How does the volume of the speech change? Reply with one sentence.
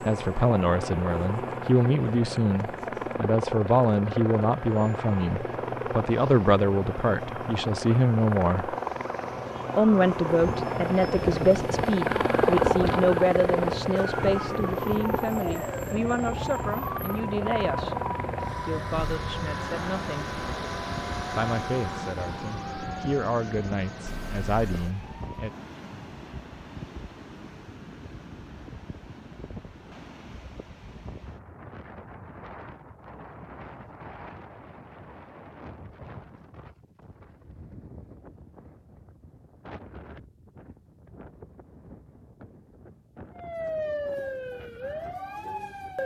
The loudness of the speech goes down.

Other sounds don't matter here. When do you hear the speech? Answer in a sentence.
The speech can be heard from 0.1 to 8.8 s, from 9.8 to 20.3 s and from 21.4 to 25.5 s.